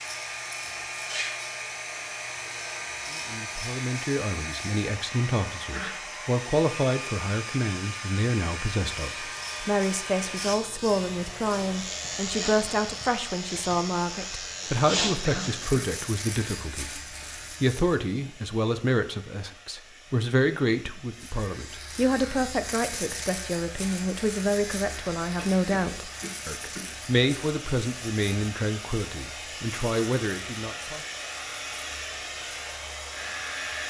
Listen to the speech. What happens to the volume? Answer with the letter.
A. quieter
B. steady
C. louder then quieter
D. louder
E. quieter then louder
B.